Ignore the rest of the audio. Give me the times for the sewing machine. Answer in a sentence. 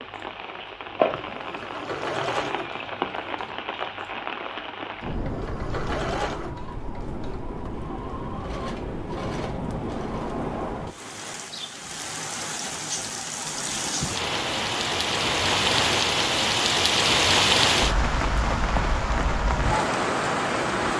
The sewing machine can be heard from 0.0 to 10.4 s.